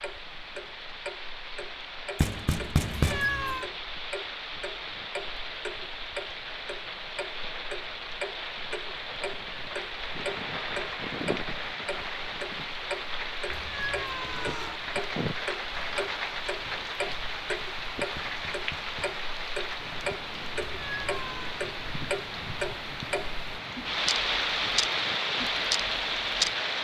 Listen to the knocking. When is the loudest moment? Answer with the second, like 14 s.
3 s.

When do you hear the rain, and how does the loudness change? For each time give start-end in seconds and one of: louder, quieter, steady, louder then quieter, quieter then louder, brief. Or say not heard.
0.0-26.7 louder.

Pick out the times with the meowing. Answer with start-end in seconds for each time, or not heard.
2.9-3.7, 13.4-14.8, 20.8-21.6.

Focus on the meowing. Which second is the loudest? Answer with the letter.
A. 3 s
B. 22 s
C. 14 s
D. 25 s
A.